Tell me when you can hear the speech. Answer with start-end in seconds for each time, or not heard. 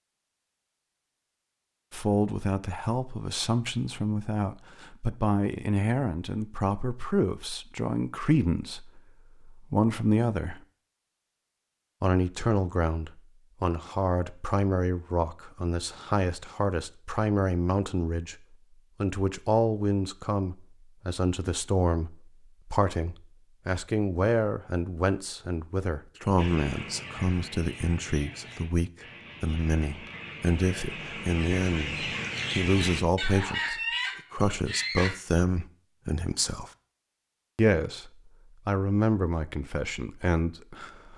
1.9-10.6, 12.0-18.4, 19.0-36.7, 37.5-41.1.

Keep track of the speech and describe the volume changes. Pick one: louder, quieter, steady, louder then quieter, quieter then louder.
steady.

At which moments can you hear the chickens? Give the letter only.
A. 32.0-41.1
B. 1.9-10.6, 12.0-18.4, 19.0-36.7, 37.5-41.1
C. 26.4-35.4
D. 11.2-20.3
C.